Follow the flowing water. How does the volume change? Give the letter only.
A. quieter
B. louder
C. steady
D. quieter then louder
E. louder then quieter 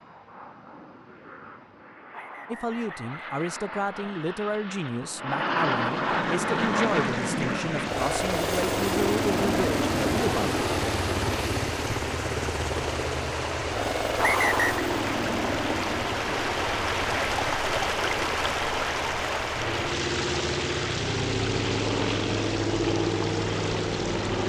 E.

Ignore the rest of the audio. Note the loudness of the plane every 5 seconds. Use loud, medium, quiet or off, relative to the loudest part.
quiet, loud, loud, medium, loud.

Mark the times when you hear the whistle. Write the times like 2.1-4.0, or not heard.
2.1-4.2, 14.2-14.8.